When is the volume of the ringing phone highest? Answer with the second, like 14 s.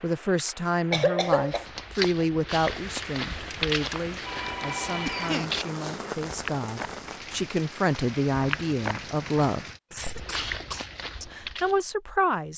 5 s.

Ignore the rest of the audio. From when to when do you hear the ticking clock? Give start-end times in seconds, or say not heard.
not heard.